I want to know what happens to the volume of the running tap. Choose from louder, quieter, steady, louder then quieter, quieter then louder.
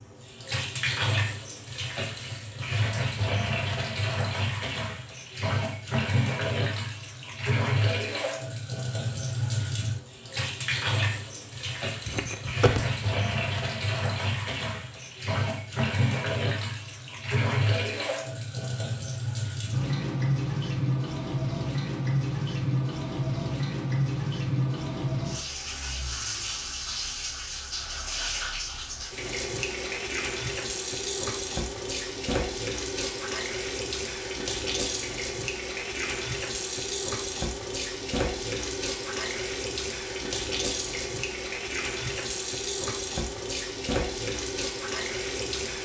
steady.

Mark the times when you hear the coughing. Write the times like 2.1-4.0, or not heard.
12.1-12.8.